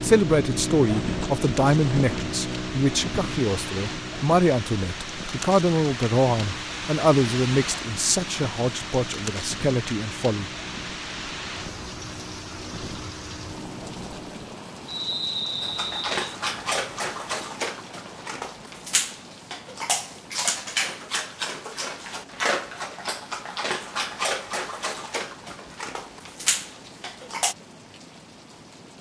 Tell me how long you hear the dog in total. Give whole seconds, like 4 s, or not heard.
12 s.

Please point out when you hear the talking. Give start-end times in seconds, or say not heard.
0.0-10.5.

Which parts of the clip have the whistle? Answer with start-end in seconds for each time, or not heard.
14.8-16.1.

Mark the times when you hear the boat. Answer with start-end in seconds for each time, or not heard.
0.0-14.4.